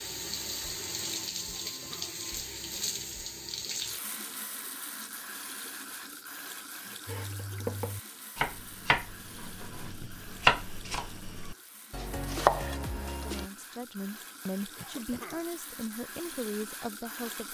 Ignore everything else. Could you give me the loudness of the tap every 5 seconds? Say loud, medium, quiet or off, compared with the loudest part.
loud, medium, quiet, medium.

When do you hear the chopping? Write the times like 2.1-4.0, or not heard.
7.0-13.4.